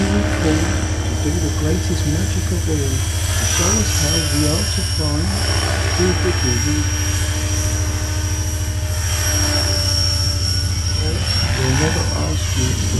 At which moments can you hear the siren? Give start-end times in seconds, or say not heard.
0.1-12.7.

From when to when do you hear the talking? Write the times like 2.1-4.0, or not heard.
0.0-6.9, 10.9-12.9.